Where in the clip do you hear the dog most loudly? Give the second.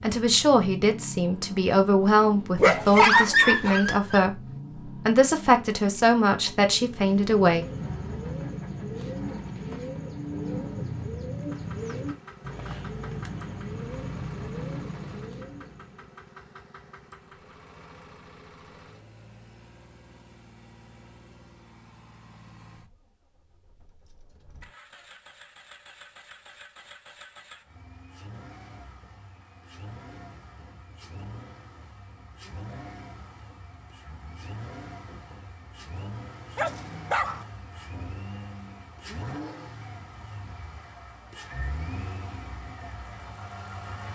3 s.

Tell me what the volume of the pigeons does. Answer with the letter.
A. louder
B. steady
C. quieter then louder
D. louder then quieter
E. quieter
B.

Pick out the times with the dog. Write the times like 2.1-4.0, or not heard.
2.5-4.2, 36.5-37.5.